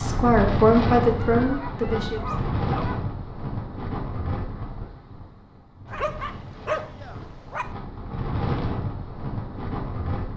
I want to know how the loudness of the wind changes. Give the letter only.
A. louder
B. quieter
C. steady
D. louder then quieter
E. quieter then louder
E.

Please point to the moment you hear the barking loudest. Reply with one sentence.
The loudest moment of the barking is at 7 seconds.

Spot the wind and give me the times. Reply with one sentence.
You can hear the wind from 0.0 to 10.3 s.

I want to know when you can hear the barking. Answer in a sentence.
The barking can be heard from 1.3 to 3.0 s and from 5.8 to 7.7 s.